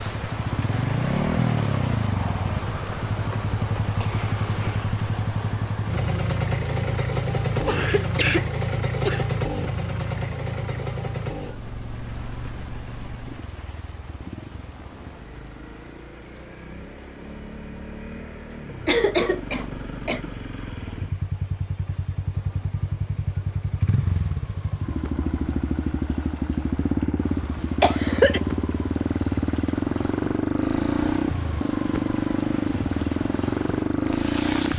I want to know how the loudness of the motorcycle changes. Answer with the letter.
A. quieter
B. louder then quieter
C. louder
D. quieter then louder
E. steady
D.